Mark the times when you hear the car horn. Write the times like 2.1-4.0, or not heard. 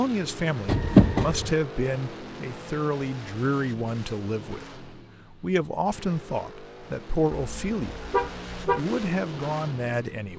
0.7-1.5, 7.3-8.8.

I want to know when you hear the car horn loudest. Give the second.
1 s.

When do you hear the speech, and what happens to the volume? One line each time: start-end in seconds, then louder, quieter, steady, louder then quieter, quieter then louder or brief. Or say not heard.
0.0-10.3 steady.